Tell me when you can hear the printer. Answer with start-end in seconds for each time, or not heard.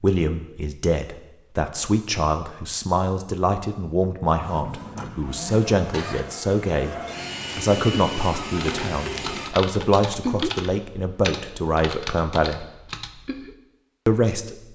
4.3-9.6.